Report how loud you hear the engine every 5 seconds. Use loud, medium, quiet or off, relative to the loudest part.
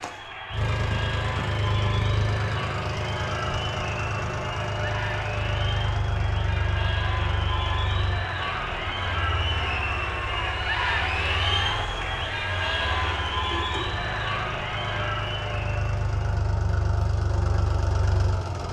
loud, loud, medium, loud.